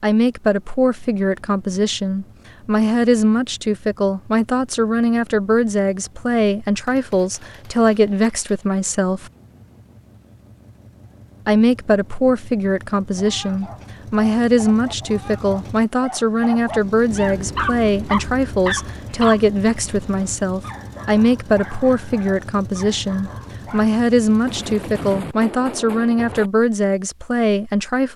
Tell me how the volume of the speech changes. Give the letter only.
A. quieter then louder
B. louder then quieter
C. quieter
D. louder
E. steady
E.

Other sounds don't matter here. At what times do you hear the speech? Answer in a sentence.
You can hear the speech from 0.0 to 9.3 s and from 11.4 to 28.1 s.